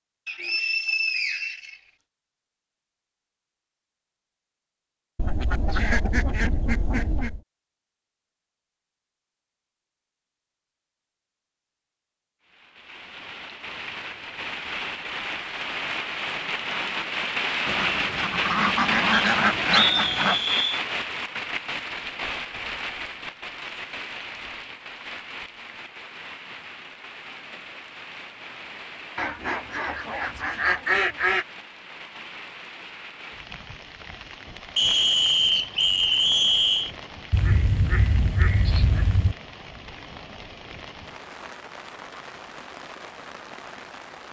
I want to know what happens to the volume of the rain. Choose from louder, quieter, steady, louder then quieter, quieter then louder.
quieter.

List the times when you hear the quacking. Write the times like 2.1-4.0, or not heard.
5.2-7.4, 17.6-20.4, 29.1-31.4, 37.3-39.4.